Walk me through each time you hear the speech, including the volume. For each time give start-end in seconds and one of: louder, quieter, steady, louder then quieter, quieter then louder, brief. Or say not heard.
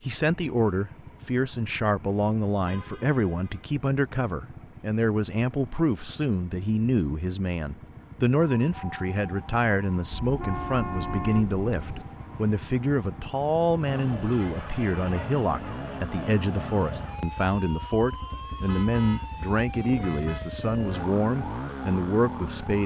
0.1-22.8 steady.